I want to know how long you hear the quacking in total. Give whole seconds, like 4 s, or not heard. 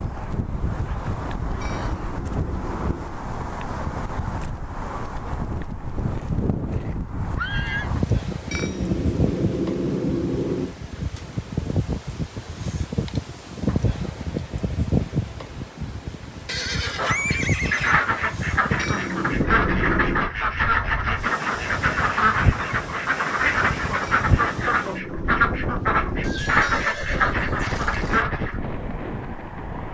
12 s.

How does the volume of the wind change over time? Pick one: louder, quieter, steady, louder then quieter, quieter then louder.
steady.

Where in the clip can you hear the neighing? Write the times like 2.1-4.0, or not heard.
6.1-7.9, 16.4-18.0, 26.2-28.2.